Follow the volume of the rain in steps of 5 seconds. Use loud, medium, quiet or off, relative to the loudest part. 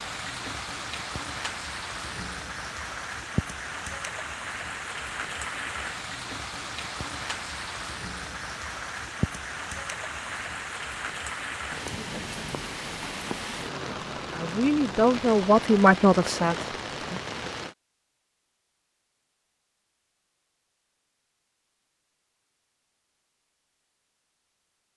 loud, loud, loud, loud, off.